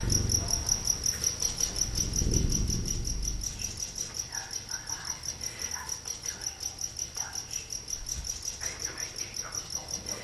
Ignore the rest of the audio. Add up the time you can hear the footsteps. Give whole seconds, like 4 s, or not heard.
not heard.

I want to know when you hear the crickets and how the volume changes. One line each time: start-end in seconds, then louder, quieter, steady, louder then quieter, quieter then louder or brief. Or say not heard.
0.0-10.2 quieter.